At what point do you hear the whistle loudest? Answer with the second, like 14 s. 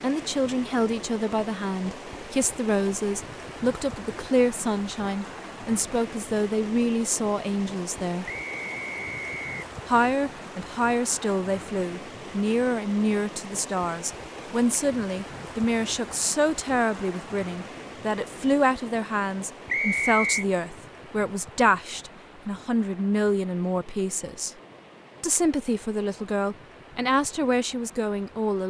20 s.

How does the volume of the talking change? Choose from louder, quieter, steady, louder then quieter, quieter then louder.
steady.